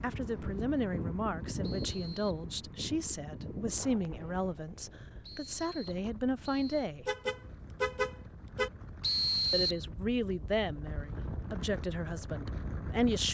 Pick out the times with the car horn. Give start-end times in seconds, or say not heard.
7.0-8.7.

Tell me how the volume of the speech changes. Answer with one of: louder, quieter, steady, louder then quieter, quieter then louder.
steady.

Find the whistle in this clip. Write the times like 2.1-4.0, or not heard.
1.6-2.5, 5.2-6.9, 9.0-9.8.